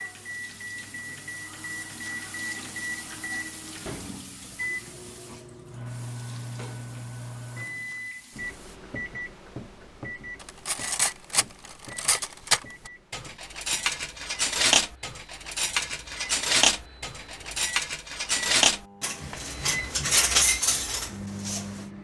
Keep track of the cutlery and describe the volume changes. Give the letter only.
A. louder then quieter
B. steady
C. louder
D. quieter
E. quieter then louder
B.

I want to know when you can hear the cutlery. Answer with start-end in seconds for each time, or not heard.
10.4-21.9.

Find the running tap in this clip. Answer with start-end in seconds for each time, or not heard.
0.0-8.8.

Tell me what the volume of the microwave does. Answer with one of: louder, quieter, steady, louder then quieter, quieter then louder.
quieter then louder.